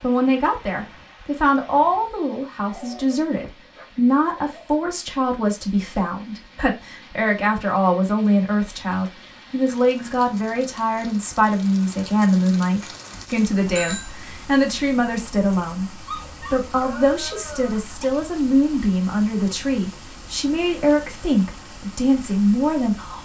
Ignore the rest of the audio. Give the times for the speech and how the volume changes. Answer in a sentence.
You can hear the speech from 0.0 to 23.1 s, at a steady volume.